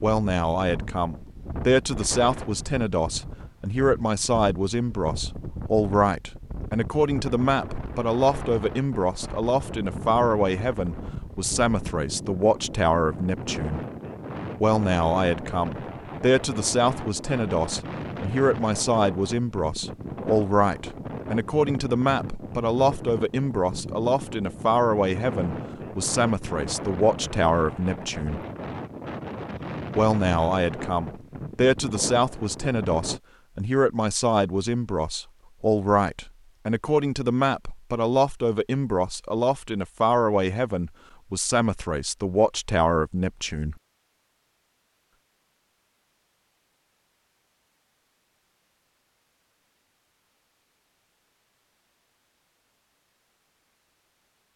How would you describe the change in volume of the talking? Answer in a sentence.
The loudness of the talking stays about the same.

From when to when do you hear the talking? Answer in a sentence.
You can hear the talking from 0.0 to 13.8 s, from 14.6 to 28.4 s and from 29.9 to 43.8 s.